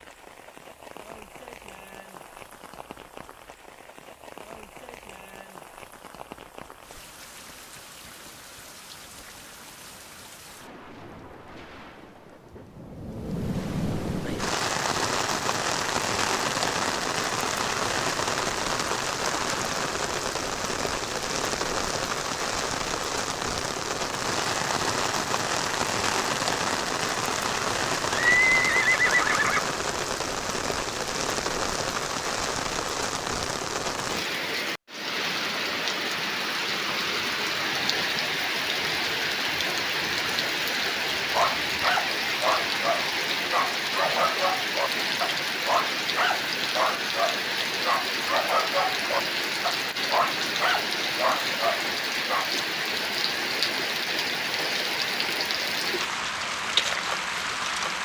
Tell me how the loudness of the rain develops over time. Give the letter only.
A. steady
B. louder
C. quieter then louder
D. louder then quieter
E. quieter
B.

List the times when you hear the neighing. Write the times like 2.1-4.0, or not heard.
28.1-29.6.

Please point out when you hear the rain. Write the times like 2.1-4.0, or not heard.
0.0-58.0.